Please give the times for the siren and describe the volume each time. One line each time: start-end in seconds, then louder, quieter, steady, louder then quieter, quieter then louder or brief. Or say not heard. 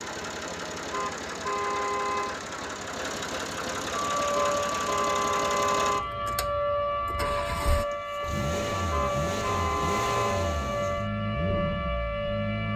3.9-12.7 steady.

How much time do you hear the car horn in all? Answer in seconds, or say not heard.
5 s.